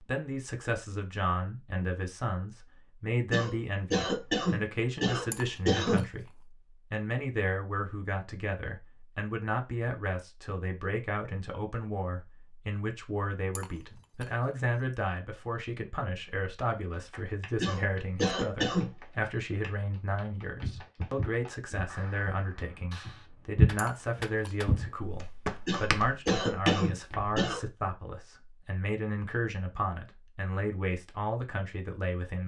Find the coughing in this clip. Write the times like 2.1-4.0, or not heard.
3.3-6.0, 17.6-18.9, 25.6-27.6.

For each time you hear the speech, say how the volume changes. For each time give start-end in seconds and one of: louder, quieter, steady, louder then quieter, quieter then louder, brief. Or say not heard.
0.0-32.4 steady.